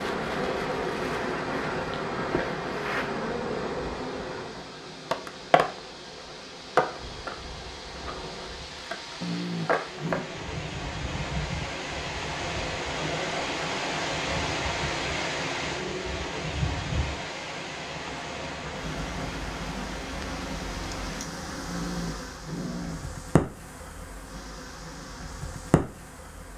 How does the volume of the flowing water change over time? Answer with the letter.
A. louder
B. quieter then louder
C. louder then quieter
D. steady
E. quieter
C.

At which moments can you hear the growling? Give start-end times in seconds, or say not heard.
9.2-10.3, 21.6-23.1.